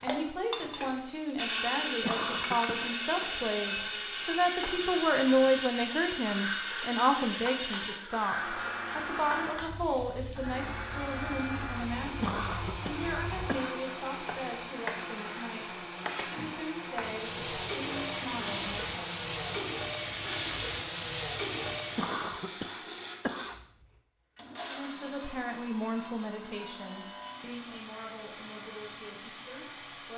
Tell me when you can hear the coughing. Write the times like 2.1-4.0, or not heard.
2.0-2.9, 12.2-13.8, 21.9-23.6.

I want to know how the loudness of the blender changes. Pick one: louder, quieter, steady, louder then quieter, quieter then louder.
quieter.